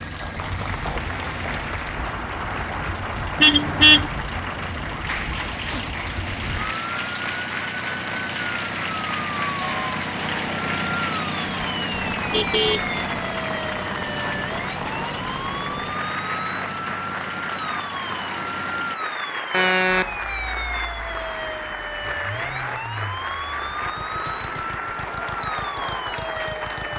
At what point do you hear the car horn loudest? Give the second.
4 s.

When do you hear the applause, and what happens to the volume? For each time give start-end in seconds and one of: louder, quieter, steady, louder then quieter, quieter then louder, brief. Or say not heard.
0.0-26.9 steady.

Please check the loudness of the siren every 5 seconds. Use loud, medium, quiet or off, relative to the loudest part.
medium, loud, loud, loud, loud, loud.